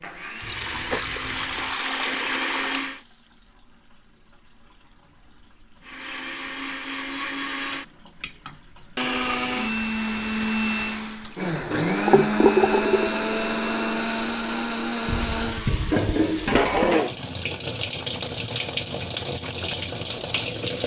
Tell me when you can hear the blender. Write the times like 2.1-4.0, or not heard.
0.0-3.0, 5.8-15.7.